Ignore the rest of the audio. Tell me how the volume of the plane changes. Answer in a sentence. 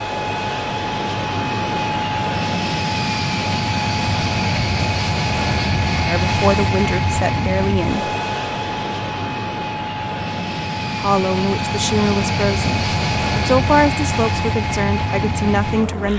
The volume of the plane stays about the same.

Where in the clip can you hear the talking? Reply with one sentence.
The talking can be heard from 6.0 to 8.1 s and from 11.0 to 16.1 s.